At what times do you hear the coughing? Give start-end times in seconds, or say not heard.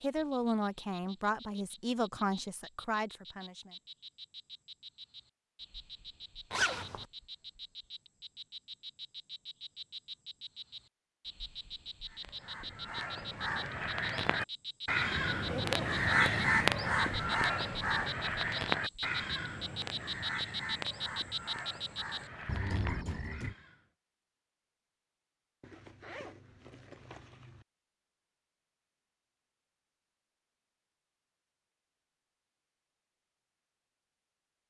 not heard.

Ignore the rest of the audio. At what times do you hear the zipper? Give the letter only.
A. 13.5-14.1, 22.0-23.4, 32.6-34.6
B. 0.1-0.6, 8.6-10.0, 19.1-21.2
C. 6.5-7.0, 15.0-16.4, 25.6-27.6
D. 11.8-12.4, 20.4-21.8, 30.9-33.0
C.